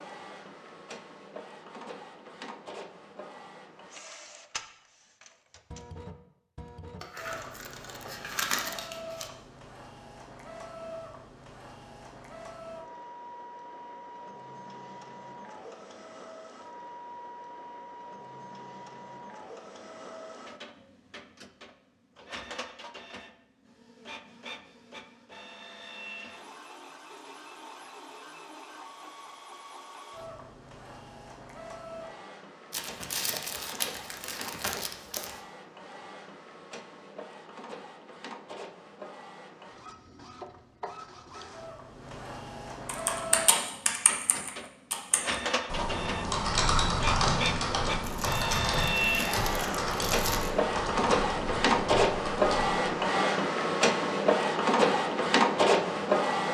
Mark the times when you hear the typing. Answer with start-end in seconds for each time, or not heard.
42.9-52.8.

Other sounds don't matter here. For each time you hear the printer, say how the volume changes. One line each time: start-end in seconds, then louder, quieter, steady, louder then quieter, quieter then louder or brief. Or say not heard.
0.0-56.4 louder.